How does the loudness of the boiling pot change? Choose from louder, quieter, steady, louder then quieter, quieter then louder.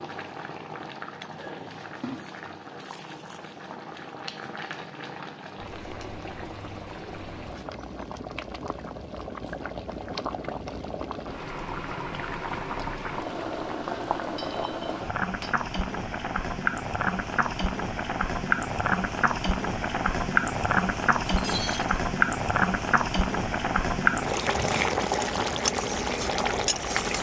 louder.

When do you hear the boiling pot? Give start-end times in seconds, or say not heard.
0.0-27.1.